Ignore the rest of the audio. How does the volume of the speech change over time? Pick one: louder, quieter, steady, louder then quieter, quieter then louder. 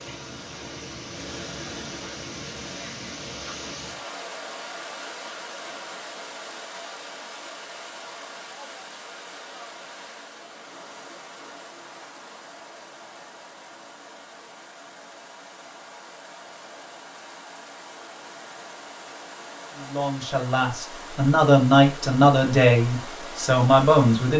louder.